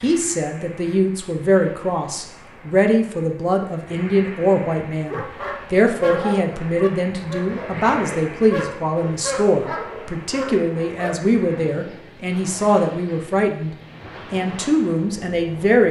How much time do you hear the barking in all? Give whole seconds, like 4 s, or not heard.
6 s.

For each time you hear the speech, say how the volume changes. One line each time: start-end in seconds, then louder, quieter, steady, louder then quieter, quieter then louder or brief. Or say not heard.
0.0-15.8 steady.